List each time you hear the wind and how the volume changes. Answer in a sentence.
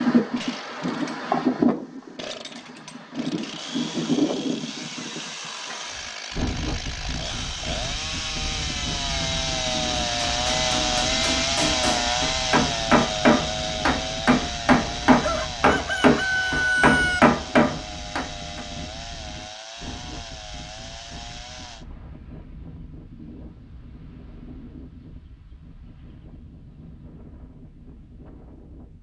The wind can be heard from 0.0 to 28.9 s, getting quieter.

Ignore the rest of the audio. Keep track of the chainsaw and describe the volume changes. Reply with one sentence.
The volume of the chainsaw goes up, then down.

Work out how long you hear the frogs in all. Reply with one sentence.
You can't hear the frogs here.